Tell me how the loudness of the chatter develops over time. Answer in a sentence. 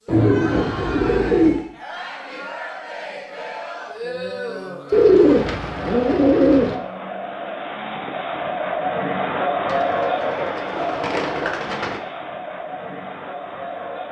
The volume of the chatter goes up, then down.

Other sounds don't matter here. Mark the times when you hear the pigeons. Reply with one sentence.
You can hear the pigeons from 0.1 to 1.6 s, from 4.9 to 6.8 s and from 9.7 to 12.0 s.